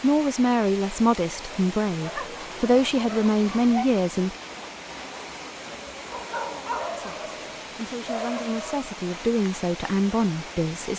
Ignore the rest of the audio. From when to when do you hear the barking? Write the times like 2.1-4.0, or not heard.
2.0-3.9, 6.1-8.9.